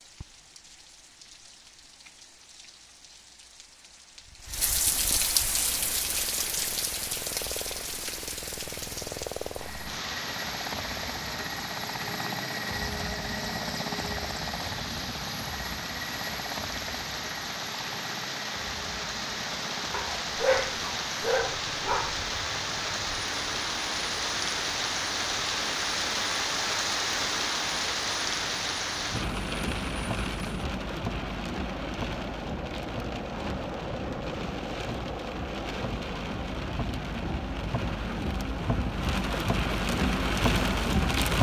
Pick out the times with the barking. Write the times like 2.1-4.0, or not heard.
19.9-22.2.